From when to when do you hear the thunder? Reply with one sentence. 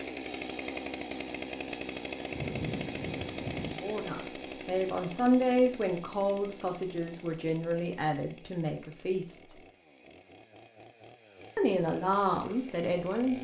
The thunder can be heard from 2.3 to 3.8 s.